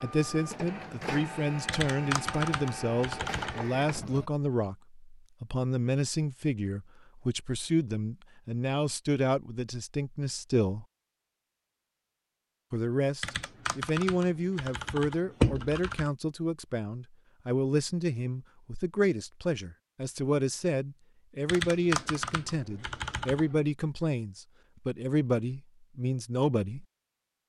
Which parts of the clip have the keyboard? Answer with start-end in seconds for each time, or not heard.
1.6-3.6, 13.2-16.1, 21.4-23.6.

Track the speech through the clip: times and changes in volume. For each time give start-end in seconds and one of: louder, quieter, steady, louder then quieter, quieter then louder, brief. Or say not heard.
0.0-10.8 steady
12.7-26.9 steady.